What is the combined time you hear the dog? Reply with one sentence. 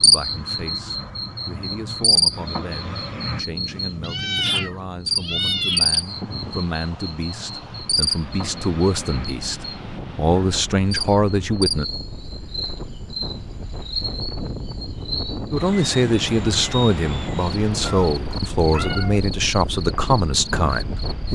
The dog can't be heard in this clip.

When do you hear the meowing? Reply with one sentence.
You can hear the meowing from 4.0 to 6.0 s and from 17.9 to 19.2 s.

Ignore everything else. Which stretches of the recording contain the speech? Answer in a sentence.
You can hear the speech from 0.0 to 11.8 s and from 15.5 to 21.3 s.